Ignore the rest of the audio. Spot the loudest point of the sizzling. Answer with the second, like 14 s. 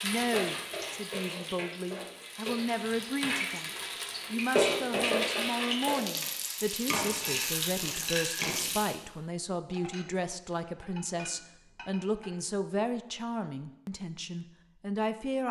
5 s.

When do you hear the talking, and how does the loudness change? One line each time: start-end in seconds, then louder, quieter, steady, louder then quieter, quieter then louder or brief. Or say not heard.
0.0-15.4 steady.